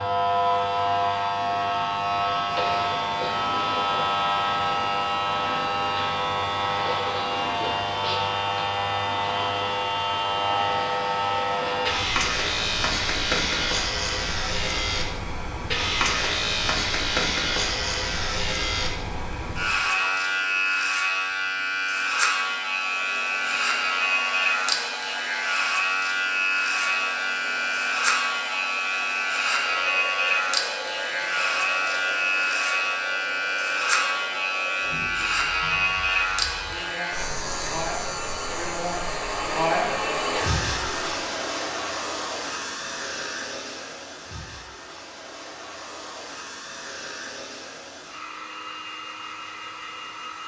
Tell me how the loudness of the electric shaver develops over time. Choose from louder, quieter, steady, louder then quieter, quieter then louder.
steady.